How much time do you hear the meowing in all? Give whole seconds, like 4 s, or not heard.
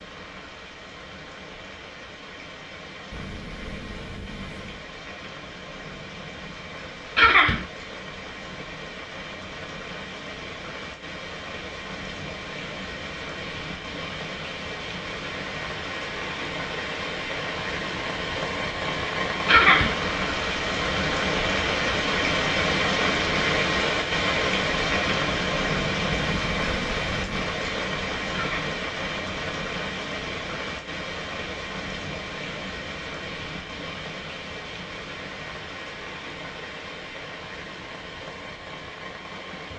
3 s.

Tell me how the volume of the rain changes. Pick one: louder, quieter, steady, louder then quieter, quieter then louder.
louder then quieter.